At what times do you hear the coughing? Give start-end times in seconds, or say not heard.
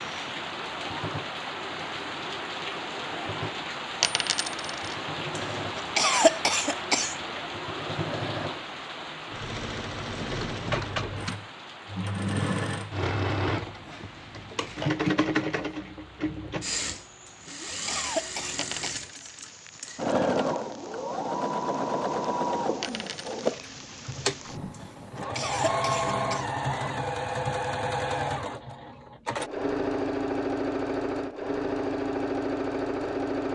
5.3-7.2, 17.2-19.1, 24.7-26.4.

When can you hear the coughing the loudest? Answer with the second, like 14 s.
6 s.